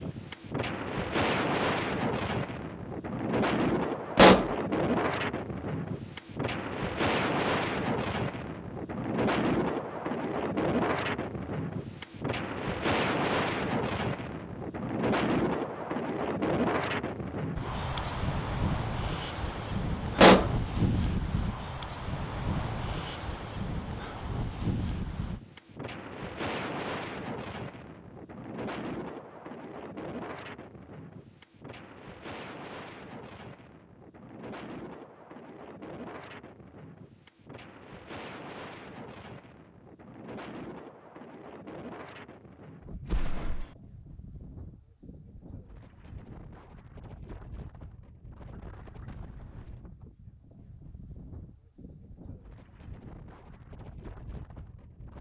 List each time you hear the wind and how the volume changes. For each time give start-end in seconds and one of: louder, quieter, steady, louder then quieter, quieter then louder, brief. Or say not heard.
0.0-55.1 quieter.